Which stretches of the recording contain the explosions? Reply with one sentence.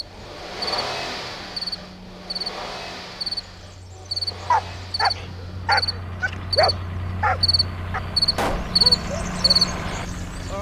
The explosions can be heard from 8.3 to 8.8 s.